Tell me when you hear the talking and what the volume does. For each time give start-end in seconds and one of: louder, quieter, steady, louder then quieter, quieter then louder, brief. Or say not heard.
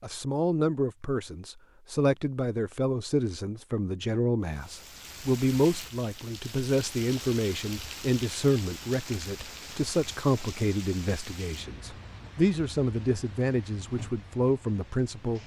0.0-15.4 steady.